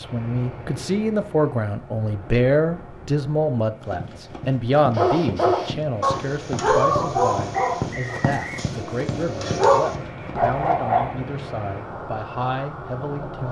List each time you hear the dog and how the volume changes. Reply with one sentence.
The dog can be heard from 5.0 to 11.2 s, getting quieter then louder.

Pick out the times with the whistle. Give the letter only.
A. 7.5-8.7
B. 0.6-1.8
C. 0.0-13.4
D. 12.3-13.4
A.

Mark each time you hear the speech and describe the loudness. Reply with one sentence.
The speech can be heard from 0.0 to 13.4 s, getting quieter.